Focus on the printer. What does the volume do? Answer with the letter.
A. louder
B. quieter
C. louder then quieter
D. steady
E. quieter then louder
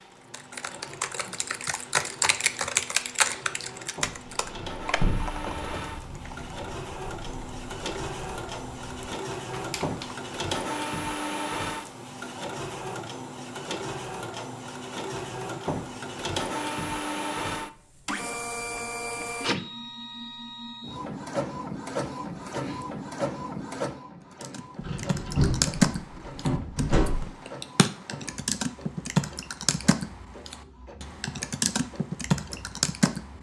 C.